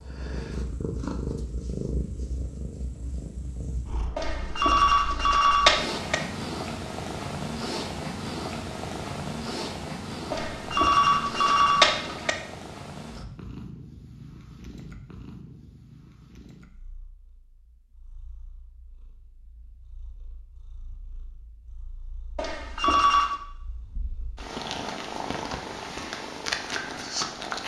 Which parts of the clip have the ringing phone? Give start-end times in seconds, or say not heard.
4.2-6.2, 10.3-12.3, 22.4-23.4.